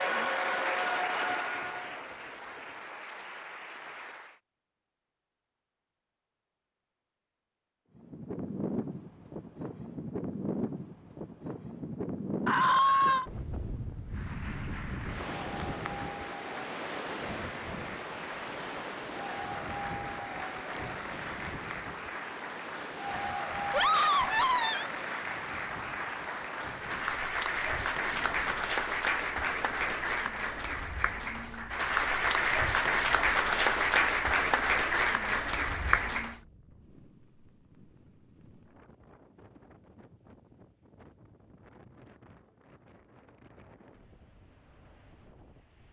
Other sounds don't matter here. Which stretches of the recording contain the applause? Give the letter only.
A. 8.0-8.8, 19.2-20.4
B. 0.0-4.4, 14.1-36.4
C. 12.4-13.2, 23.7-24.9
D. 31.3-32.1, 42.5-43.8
B.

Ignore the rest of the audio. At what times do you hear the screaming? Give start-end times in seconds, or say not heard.
12.4-13.2, 23.7-24.9.